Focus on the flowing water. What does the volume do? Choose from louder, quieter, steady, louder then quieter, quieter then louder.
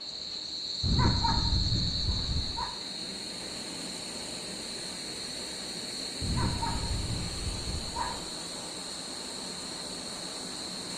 louder.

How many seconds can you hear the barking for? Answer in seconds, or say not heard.
4 s.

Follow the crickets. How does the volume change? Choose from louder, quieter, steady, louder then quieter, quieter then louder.
quieter.